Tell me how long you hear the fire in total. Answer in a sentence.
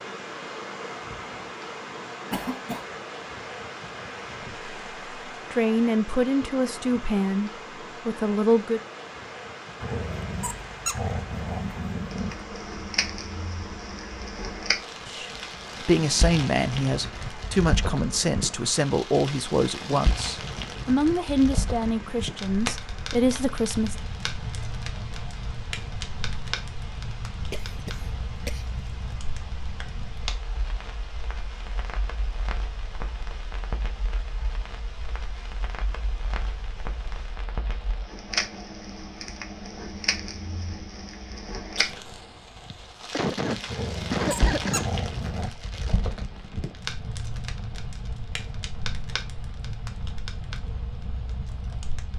You can hear the fire for 40 seconds altogether.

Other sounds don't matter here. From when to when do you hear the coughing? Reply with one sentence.
The coughing can be heard from 2.3 to 2.9 s, from 27.5 to 28.6 s and from 42.6 to 44.9 s.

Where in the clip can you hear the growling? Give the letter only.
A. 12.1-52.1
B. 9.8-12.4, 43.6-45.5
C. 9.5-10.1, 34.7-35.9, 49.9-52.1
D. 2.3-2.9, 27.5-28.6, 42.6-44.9
B.